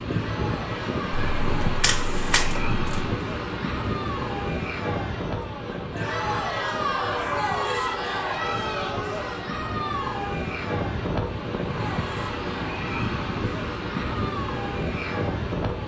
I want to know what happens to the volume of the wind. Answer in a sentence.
The volume of the wind goes down, then up.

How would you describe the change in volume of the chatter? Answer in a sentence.
The volume of the chatter goes up, then down.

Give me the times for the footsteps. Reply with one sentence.
The footsteps can't be heard in this clip.